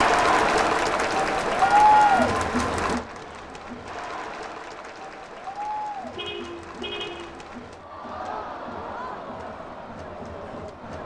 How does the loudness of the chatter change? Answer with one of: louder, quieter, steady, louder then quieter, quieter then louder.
quieter.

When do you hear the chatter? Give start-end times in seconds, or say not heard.
0.0-11.0.